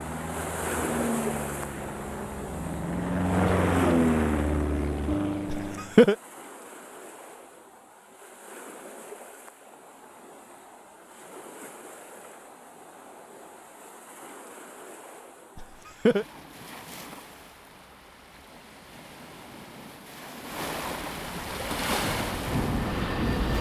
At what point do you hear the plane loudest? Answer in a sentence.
The volume of the plane peaks at 4 seconds.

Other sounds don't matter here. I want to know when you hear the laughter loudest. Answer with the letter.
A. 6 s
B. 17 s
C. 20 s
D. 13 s
A.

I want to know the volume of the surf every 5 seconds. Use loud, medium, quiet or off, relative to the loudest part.
loud, quiet, quiet, quiet, loud.